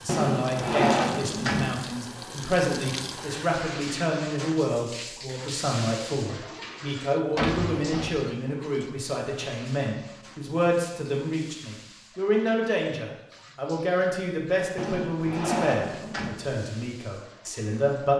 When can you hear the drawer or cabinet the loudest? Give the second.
1 s.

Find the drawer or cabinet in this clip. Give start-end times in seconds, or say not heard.
0.1-1.8, 7.3-8.3, 14.8-16.4.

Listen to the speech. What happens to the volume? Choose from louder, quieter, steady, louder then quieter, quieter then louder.
steady.